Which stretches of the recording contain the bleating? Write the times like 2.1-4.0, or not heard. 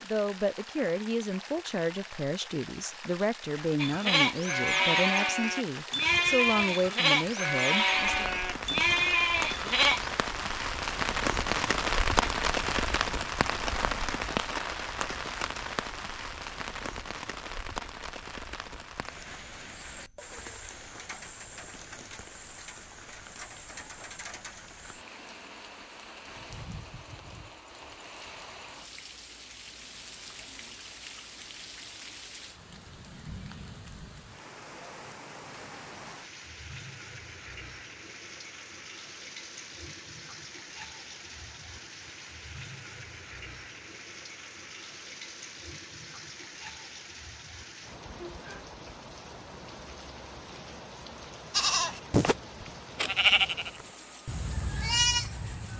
3.8-10.1, 51.5-55.7.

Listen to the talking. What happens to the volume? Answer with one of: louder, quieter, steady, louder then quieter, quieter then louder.
steady.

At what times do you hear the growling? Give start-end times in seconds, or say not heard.
not heard.